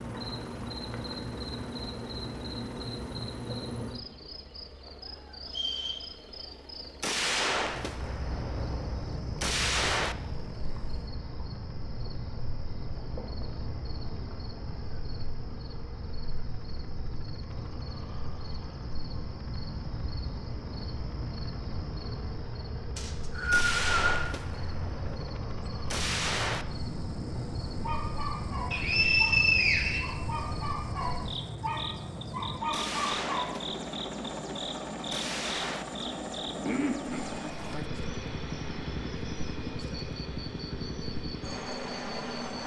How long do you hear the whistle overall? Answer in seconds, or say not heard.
4 s.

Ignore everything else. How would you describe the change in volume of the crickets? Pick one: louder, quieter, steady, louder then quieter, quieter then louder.
steady.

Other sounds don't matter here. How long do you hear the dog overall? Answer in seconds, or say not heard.
6 s.